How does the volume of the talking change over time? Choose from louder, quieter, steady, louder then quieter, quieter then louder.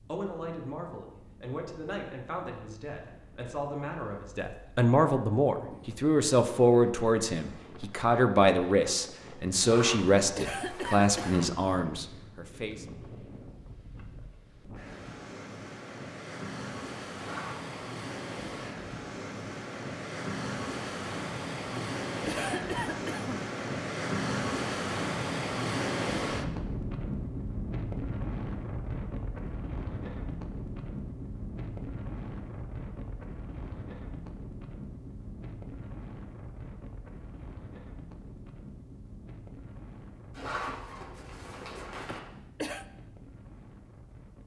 louder.